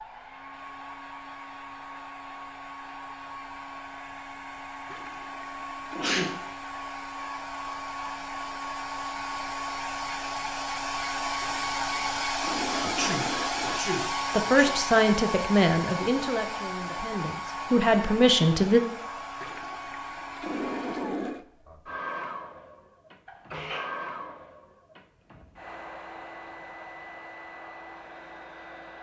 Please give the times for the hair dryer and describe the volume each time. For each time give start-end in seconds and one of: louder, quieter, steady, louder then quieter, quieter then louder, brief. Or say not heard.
0.0-28.9 louder then quieter.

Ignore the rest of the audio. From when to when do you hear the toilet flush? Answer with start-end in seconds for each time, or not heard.
4.9-6.4, 11.4-13.8, 19.4-21.4.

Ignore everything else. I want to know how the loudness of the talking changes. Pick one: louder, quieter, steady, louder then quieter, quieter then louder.
quieter then louder.